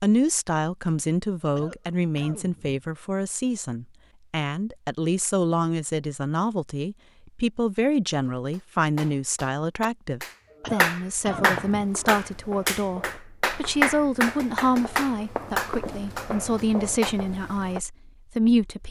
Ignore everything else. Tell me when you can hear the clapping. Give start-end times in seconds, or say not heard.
8.2-17.1.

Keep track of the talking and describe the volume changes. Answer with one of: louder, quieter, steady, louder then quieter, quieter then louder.
steady.